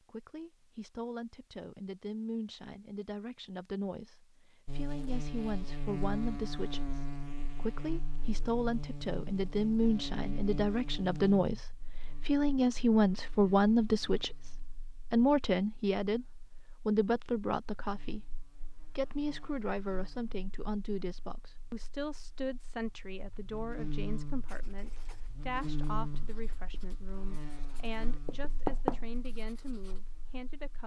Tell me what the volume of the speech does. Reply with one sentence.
The volume of the speech goes up, then down.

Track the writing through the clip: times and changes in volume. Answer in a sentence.
The writing can be heard from 24.2 to 30.1 s, getting louder.